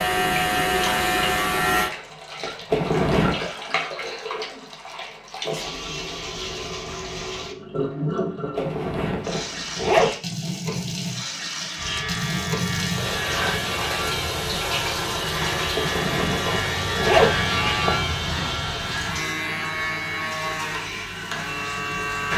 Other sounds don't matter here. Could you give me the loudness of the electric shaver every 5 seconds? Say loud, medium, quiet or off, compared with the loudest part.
loud, off, medium, medium, medium.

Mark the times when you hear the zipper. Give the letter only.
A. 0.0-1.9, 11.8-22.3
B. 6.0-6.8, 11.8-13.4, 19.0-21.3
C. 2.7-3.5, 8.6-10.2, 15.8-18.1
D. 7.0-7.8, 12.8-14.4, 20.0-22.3
C.